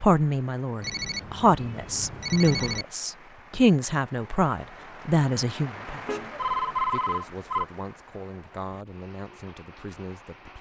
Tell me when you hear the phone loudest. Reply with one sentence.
The volume of the phone peaks at 7 seconds.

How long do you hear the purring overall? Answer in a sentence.
The purring can't be heard in this clip.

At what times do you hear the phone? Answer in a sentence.
You can hear the phone from 0.8 to 2.9 s and from 6.0 to 7.7 s.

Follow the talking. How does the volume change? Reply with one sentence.
The loudness of the talking goes down.